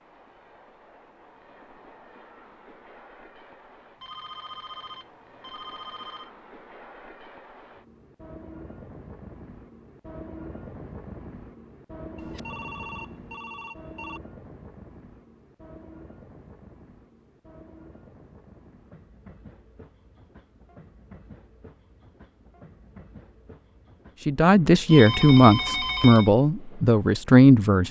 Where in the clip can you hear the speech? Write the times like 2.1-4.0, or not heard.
24.2-27.8.